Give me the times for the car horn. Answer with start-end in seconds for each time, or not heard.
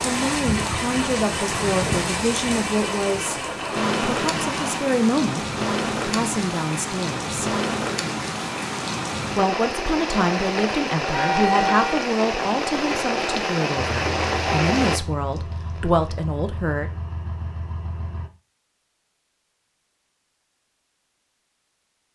11.1-12.1.